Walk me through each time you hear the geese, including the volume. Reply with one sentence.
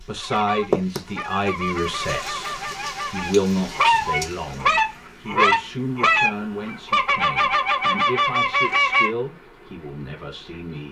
You can hear the geese from 0.2 to 9.1 s, getting louder.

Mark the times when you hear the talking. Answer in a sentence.
The talking can be heard from 0.0 to 10.8 s.